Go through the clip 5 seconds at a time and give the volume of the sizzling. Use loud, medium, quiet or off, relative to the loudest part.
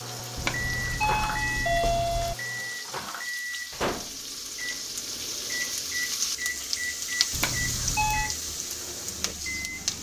medium, loud.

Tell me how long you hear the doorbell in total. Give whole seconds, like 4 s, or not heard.
3 s.